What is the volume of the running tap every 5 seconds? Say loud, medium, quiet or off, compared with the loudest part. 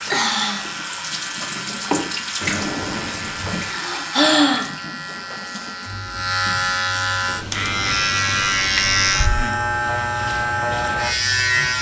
loud, quiet, quiet.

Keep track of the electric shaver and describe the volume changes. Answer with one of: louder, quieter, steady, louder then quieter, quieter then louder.
louder.